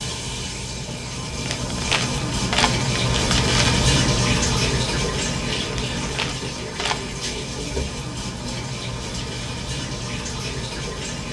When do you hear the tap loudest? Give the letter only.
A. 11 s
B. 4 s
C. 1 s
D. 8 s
B.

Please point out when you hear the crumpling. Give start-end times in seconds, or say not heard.
1.4-3.8, 5.7-7.0.